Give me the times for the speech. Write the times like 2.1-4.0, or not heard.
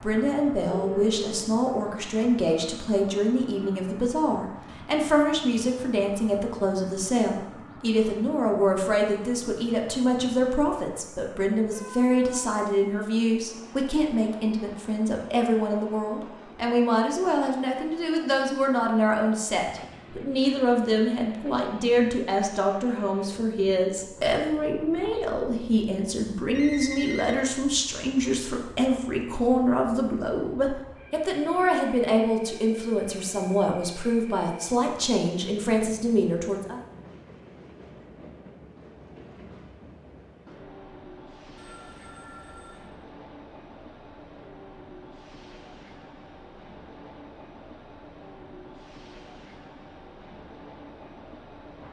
0.0-36.8.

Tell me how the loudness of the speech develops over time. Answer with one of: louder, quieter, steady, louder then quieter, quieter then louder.
steady.